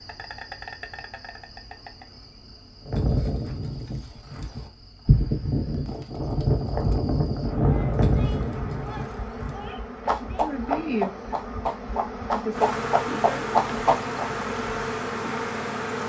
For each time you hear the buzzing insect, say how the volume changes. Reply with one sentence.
The buzzing insect can be heard from 0.0 to 16.0 s, getting quieter then louder.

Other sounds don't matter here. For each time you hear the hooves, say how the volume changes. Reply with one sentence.
The hooves can be heard from 2.9 to 14.2 s, at a steady volume.